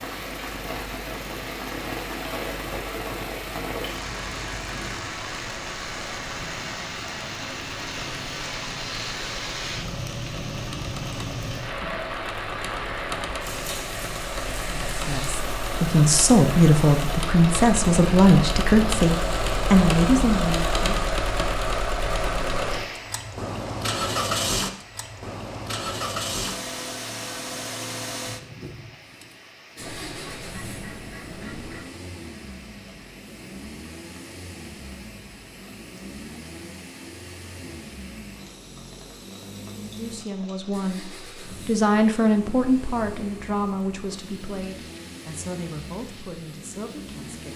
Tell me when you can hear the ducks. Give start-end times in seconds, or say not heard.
29.8-31.9.